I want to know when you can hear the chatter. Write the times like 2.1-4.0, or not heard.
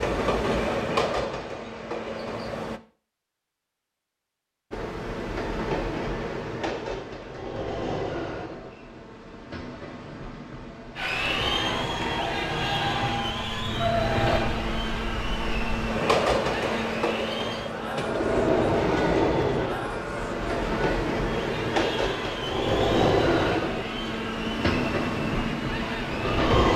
10.9-26.6.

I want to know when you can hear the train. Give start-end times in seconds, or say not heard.
0.0-2.8, 4.7-26.7.